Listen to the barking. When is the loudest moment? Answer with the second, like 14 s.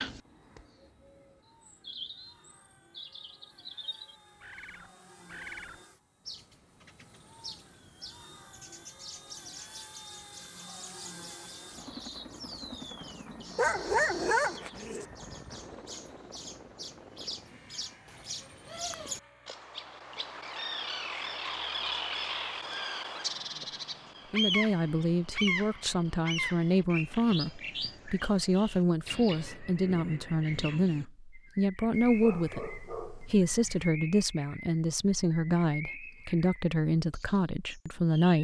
14 s.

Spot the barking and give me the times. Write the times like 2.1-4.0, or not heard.
13.6-15.1, 31.9-33.9.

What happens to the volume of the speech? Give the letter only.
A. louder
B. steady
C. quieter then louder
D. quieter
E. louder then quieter
B.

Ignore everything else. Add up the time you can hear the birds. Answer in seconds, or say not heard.
38 s.